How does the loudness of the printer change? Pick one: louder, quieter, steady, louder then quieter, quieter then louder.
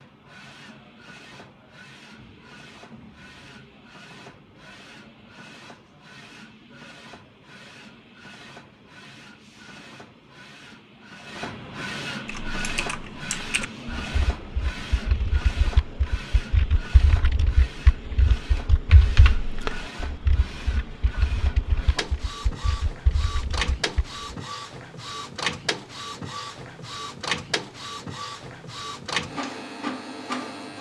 louder.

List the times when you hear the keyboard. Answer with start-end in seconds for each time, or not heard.
12.2-24.2.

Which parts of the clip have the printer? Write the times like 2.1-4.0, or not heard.
0.0-30.7.